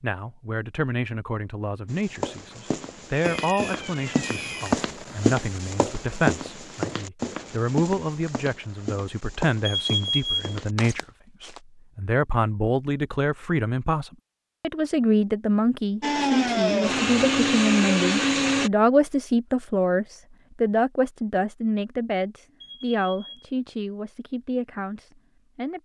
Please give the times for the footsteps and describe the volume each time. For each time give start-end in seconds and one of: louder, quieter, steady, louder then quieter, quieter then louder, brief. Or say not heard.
1.9-11.6 louder then quieter.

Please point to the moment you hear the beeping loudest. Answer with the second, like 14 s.
10 s.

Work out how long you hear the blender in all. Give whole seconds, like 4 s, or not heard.
3 s.